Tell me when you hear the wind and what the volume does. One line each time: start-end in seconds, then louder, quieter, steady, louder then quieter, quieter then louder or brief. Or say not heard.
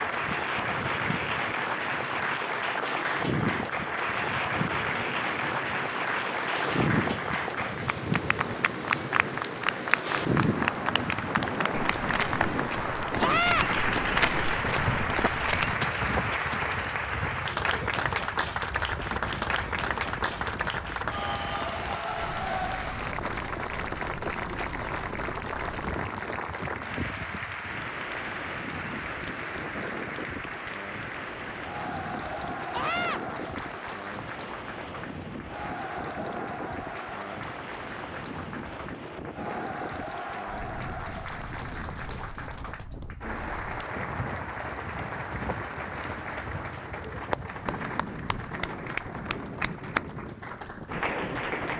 0.0-51.7 quieter.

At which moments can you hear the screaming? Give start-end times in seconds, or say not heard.
13.2-13.7, 32.7-33.2.